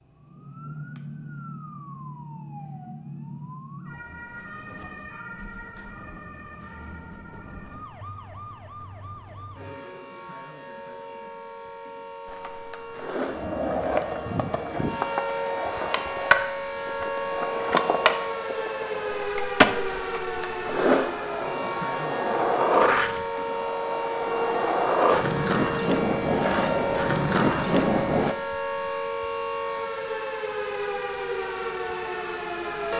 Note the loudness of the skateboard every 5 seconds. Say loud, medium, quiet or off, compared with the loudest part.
off, off, medium, loud, loud, loud, off.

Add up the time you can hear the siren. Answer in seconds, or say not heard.
33 s.